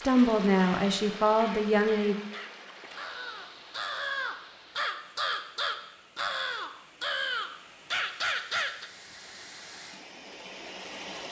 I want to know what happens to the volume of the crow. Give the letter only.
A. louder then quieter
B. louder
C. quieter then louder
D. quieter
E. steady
B.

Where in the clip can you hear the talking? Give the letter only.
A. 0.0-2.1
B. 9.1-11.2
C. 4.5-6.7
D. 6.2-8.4
A.